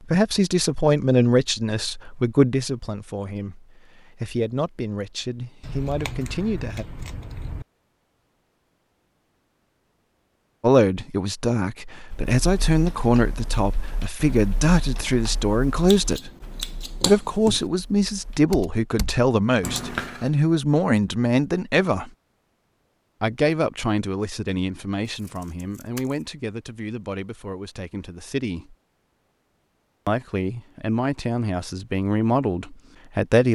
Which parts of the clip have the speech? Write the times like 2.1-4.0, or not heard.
0.1-6.8, 10.6-16.3, 17.0-22.1, 23.2-28.8, 30.1-33.4.